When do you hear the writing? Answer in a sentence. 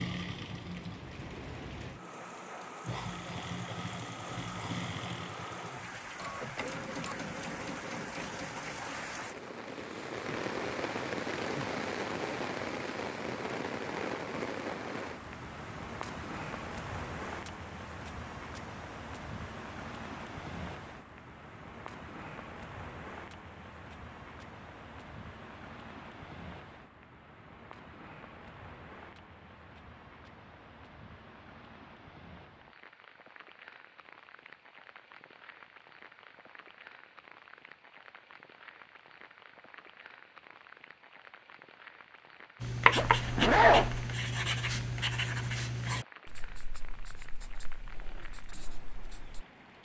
The writing can be heard from 42.6 to 49.5 s.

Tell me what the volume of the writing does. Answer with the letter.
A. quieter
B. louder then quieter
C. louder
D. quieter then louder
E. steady
A.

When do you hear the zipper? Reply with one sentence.
You can hear the zipper from 43.0 to 44.0 s.